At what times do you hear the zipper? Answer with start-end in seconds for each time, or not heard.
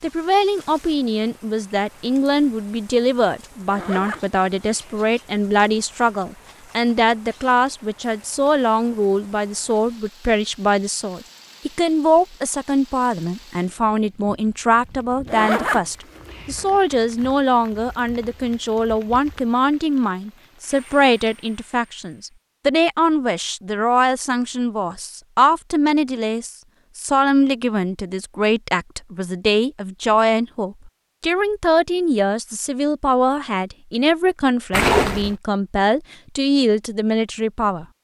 3.7-5.0, 15.2-17.2, 34.7-35.4.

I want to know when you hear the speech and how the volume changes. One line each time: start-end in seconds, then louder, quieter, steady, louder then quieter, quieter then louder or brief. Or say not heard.
0.0-37.9 steady.